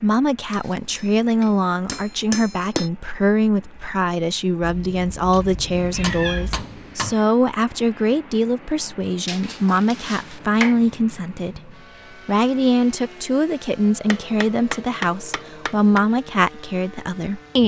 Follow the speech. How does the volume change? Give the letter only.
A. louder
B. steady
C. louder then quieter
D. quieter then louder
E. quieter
B.